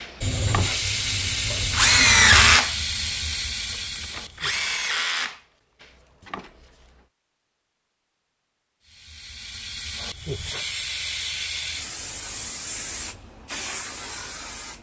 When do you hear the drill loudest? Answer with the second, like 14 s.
2 s.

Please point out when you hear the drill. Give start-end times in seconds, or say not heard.
0.0-6.9.